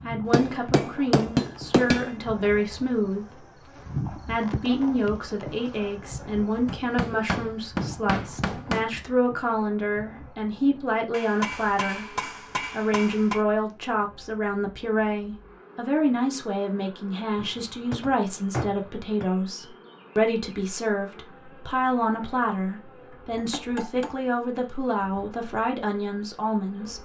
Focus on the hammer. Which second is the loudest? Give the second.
1 s.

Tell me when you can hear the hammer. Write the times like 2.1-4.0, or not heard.
0.2-2.1, 6.7-8.8, 11.1-13.4, 17.4-19.3, 23.4-24.6.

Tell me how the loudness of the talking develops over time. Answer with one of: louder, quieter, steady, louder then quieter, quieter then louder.
steady.